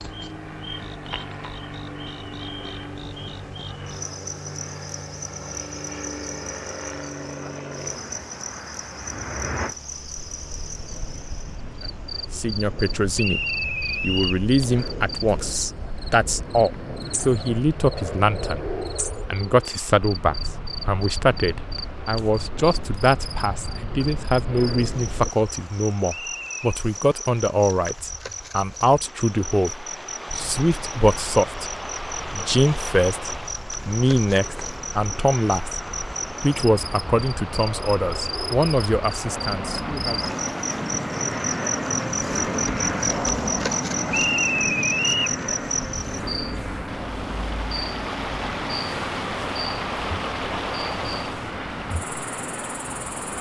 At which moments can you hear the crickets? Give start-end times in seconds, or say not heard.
0.0-53.3.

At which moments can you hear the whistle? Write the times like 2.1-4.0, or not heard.
13.2-14.4, 26.1-26.6, 44.1-45.4.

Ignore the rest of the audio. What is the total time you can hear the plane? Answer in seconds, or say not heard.
48 s.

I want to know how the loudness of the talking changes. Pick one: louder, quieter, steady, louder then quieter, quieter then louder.
steady.